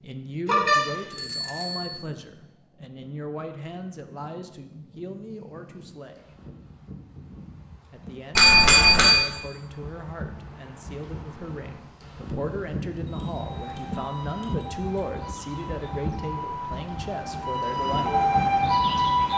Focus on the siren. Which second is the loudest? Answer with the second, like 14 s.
19 s.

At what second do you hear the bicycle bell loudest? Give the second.
9 s.